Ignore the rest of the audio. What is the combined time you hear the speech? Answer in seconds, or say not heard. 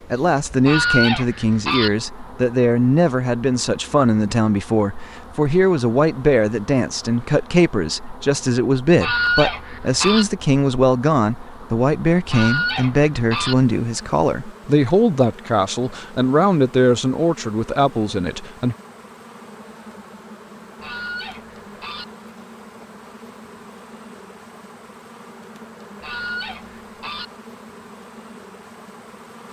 19 s.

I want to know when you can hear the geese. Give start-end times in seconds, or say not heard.
0.7-1.9, 8.9-10.2, 12.3-13.6, 20.8-22.1, 26.0-27.2.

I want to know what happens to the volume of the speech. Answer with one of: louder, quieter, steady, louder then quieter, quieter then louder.
steady.